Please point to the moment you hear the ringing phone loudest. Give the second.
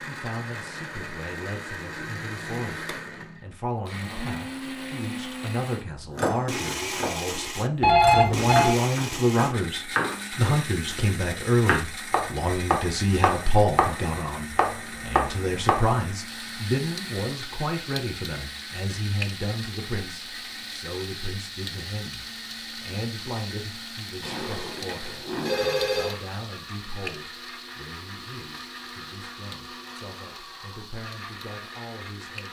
8 s.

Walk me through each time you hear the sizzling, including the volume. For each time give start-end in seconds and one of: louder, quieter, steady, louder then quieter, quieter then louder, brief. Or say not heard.
16.2-32.4 quieter.